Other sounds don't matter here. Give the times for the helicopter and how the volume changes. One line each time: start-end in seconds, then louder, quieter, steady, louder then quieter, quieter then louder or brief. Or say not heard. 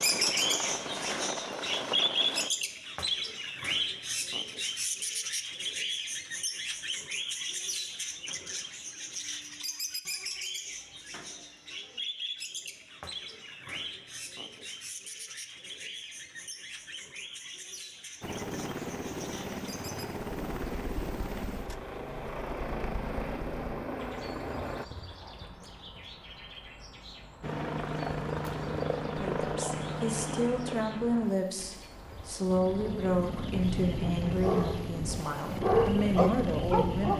0.0-2.5 brief
18.2-24.9 steady
27.4-37.1 quieter then louder.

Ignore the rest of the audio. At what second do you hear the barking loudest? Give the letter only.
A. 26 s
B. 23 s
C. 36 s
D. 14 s
C.